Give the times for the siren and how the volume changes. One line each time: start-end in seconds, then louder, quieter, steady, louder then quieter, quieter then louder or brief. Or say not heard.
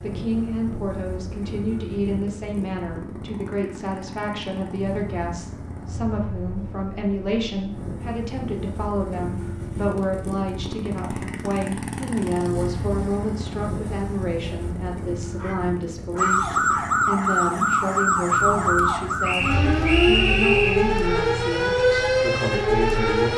16.1-23.3 steady.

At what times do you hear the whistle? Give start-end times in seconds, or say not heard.
19.2-20.9.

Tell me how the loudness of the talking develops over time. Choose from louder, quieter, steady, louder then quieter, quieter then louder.
steady.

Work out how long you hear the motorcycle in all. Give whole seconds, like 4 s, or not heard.
23 s.